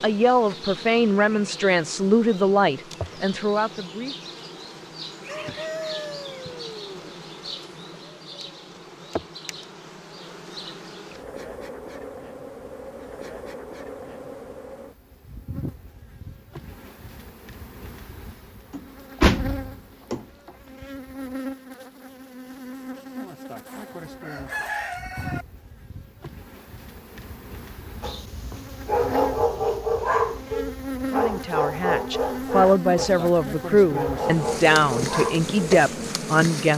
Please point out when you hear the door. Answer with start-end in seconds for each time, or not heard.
18.7-20.2.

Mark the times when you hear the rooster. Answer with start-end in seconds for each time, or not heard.
5.2-7.1, 23.6-25.4.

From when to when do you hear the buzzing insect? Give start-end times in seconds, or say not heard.
0.0-36.7.